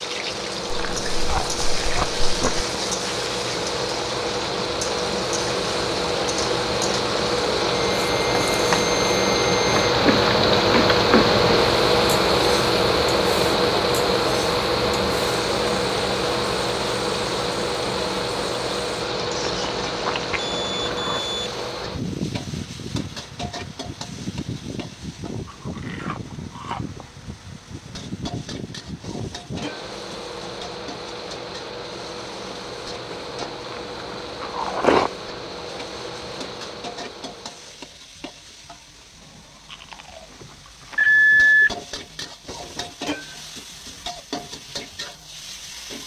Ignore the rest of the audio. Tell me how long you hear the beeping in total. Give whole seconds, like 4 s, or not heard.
4 s.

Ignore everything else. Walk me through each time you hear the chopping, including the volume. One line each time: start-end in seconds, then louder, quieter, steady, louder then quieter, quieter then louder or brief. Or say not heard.
not heard.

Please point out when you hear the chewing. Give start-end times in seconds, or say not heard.
0.7-2.6, 9.8-11.3, 19.2-21.2, 25.4-27.1, 33.4-35.1, 39.6-42.1.